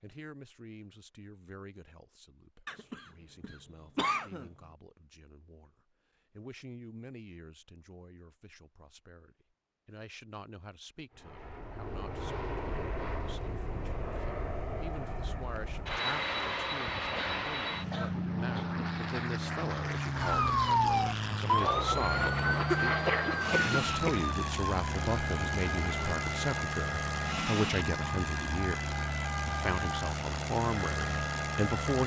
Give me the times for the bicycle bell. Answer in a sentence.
You can't hear the bicycle bell here.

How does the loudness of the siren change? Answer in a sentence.
The loudness of the siren goes down.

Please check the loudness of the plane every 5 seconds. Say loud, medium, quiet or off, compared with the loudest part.
off, off, medium, loud, loud, loud, loud.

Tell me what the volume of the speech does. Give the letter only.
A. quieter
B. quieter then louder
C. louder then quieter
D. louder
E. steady
D.